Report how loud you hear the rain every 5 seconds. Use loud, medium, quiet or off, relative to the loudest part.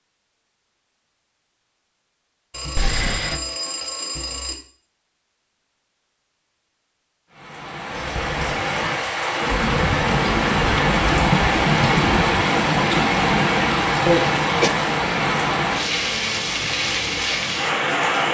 off, medium, loud, loud.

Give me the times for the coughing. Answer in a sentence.
You can hear the coughing from 2.8 to 3.4 s and from 14.1 to 14.8 s.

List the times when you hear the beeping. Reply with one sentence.
You can hear the beeping from 2.5 to 4.5 s.